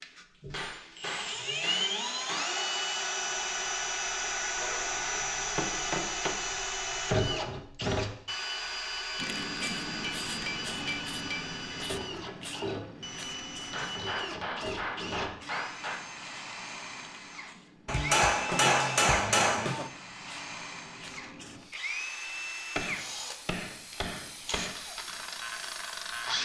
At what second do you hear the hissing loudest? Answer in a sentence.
The loudest moment of the hissing is at 10 seconds.